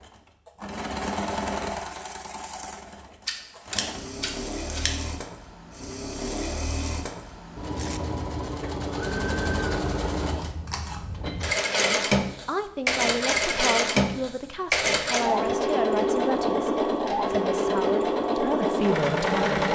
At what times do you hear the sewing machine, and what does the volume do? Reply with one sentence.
You can hear the sewing machine from 0.0 to 19.7 s, getting louder.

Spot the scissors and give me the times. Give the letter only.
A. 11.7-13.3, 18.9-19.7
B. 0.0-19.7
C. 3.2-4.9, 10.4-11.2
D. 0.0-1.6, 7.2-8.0
C.